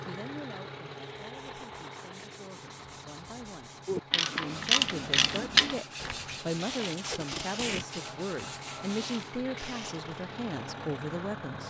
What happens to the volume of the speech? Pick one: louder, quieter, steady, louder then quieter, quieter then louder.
louder.